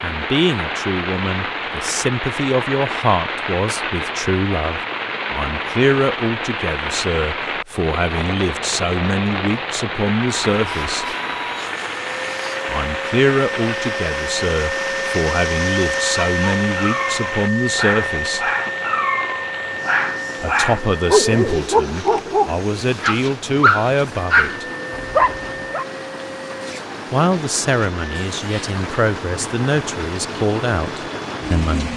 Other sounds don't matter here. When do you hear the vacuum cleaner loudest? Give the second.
16 s.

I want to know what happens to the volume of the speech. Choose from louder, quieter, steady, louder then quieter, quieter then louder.
steady.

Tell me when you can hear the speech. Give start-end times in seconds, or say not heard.
0.0-11.2, 12.7-18.5, 20.4-24.6, 27.1-31.9.